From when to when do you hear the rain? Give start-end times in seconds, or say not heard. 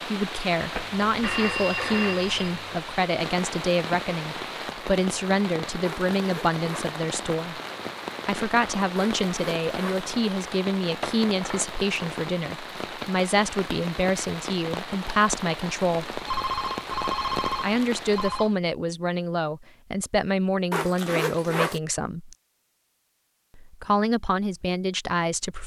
0.0-18.6.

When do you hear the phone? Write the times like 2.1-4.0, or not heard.
0.7-2.8, 16.1-18.5.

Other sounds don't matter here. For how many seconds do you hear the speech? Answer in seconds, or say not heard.
22 s.